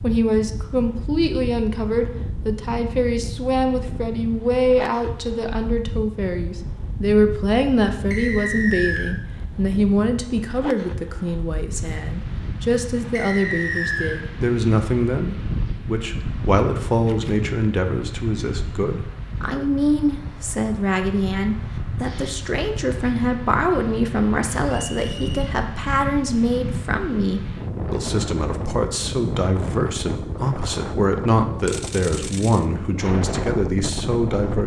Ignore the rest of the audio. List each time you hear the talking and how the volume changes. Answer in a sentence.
The talking can be heard from 0.0 to 34.6 s, at a steady volume.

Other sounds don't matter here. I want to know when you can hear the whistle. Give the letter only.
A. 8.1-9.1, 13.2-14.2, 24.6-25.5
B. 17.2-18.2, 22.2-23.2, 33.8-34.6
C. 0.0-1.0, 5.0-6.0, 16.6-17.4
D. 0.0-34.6
A.